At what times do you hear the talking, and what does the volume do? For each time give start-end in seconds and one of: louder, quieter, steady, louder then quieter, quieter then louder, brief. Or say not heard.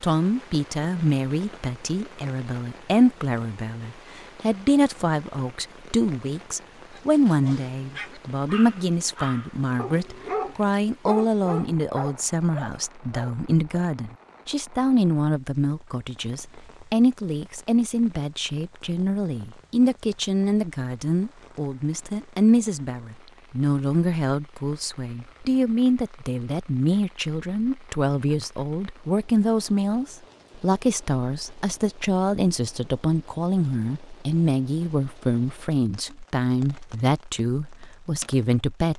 0.0-38.9 steady.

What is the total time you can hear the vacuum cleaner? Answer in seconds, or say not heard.
not heard.